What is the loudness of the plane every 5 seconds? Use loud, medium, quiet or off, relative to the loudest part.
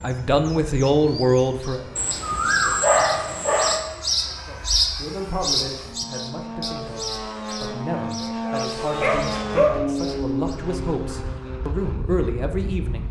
quiet, loud, loud.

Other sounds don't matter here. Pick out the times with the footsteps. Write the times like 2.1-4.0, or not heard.
not heard.